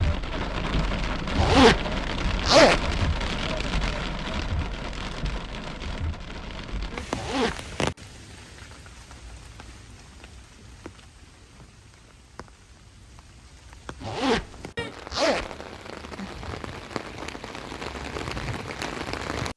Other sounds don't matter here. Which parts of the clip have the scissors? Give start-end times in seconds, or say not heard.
not heard.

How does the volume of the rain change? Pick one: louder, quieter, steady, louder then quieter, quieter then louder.
quieter then louder.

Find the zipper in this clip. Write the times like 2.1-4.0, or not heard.
1.4-3.3, 7.1-7.7, 14.0-15.5.